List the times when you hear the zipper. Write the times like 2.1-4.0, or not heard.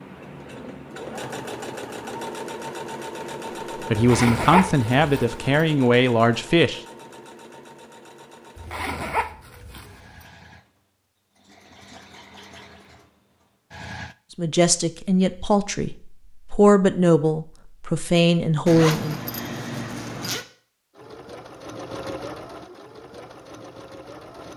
4.0-5.4, 8.6-10.2, 18.6-20.4.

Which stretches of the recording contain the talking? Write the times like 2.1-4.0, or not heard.
3.9-6.8, 14.3-19.2.